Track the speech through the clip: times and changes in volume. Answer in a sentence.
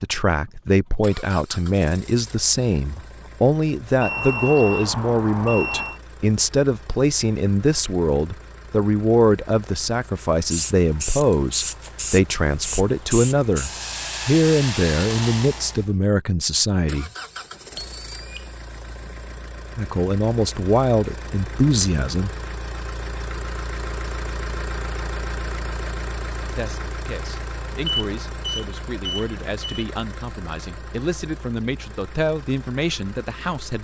You can hear the speech from 0.0 to 17.1 s, at a steady volume; briefly from 19.8 to 22.3 s; and from 26.5 to 33.7 s, getting louder.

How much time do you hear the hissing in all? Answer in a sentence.
You can hear the hissing for 5 seconds altogether.